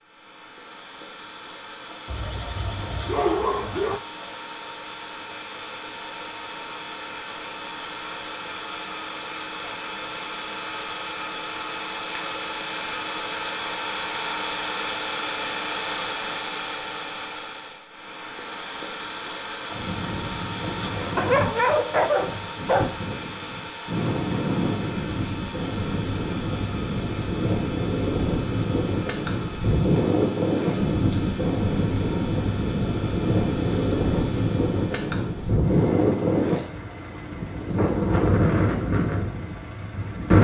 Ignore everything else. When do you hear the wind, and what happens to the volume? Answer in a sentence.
You can hear the wind from 19.7 to 40.3 s, getting louder.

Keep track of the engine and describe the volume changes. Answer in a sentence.
The loudness of the engine goes up, then down.